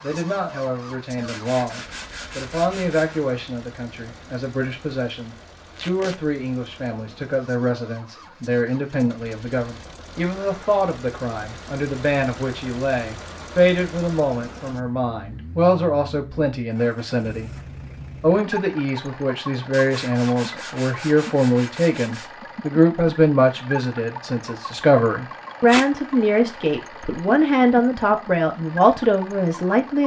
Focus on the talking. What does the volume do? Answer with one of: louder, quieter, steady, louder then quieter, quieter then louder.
louder.